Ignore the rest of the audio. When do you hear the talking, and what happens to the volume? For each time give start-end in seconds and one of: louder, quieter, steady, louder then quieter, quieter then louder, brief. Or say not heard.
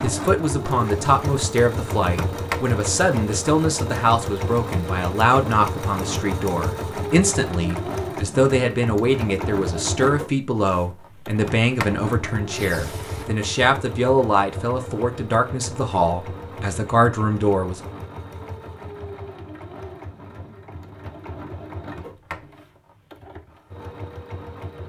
0.0-17.8 steady.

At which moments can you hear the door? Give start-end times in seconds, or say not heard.
2.0-2.6, 11.3-13.3, 21.8-22.5.